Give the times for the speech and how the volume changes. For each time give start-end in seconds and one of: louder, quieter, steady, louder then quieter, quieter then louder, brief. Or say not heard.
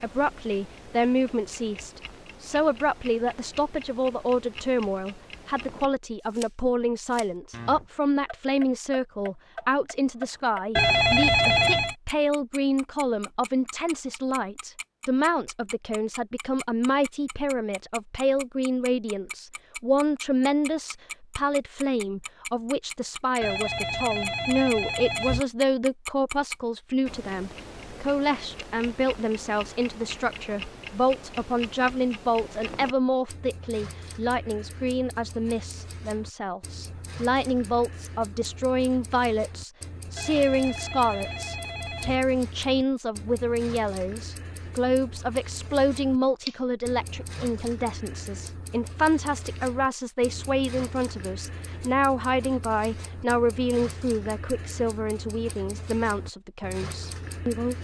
0.0-57.8 steady.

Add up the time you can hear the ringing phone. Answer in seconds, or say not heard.
5 s.